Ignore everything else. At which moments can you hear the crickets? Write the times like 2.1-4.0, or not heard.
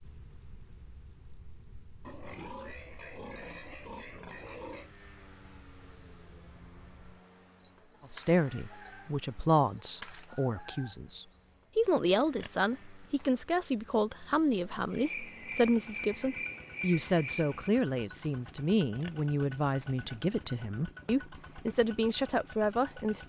0.0-18.6.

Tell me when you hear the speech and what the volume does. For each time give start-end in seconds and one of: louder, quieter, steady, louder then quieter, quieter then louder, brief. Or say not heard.
8.1-23.2 steady.